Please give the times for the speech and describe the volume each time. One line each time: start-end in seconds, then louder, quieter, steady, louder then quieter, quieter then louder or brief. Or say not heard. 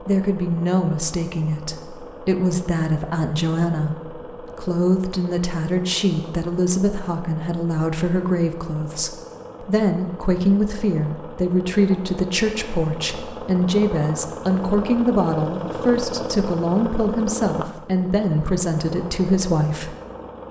0.0-19.9 steady.